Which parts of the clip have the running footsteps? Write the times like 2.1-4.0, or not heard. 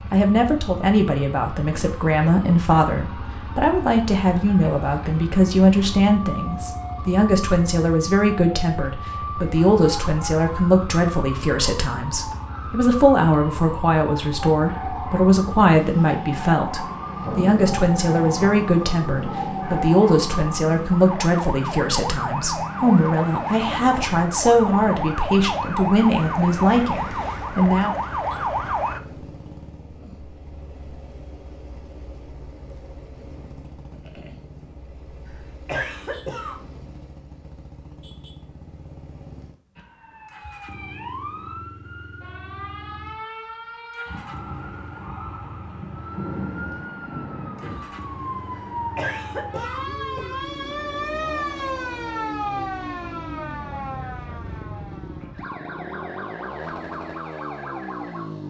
not heard.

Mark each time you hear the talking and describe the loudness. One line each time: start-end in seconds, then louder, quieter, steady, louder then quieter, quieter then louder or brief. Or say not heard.
0.1-27.9 steady.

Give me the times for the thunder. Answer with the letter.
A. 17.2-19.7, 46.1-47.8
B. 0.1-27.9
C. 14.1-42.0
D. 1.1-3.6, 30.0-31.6
A.